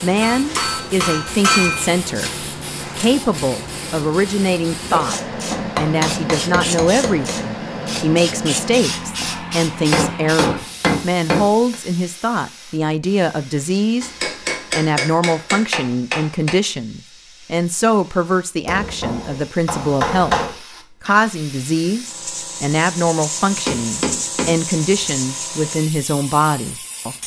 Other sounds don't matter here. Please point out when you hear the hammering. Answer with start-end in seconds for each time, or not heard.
0.2-1.9, 5.5-7.3, 9.9-11.8, 14.0-16.6, 18.6-20.6, 23.5-24.6.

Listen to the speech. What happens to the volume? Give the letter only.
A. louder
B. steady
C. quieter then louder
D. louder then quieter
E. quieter
B.